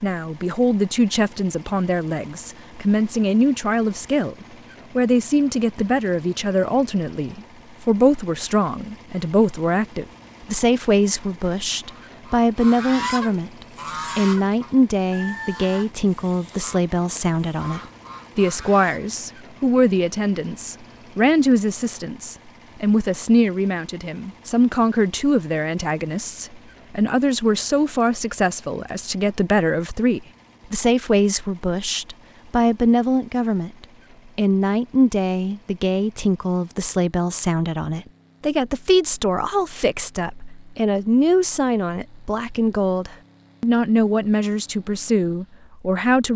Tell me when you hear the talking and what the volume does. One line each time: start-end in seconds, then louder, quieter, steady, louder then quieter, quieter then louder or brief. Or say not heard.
0.0-46.3 steady.